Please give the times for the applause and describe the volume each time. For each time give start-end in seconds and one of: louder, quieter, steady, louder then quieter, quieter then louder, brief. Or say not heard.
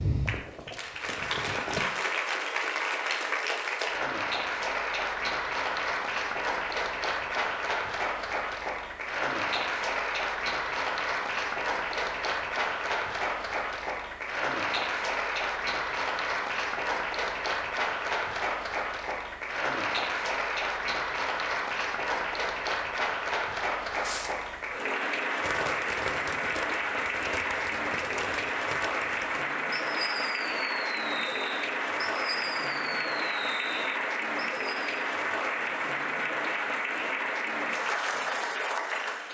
0.0-39.2 steady.